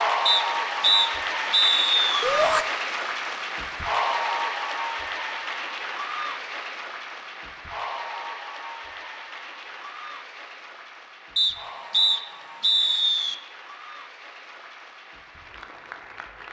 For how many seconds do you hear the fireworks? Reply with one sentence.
The fireworks can't be heard in this clip.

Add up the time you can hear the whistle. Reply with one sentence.
You can hear the whistle for 4 seconds altogether.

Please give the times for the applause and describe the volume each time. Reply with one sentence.
The applause can be heard from 0.0 to 16.4 s, getting quieter.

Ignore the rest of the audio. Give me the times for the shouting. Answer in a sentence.
The shouting can be heard from 2.2 to 2.6 s.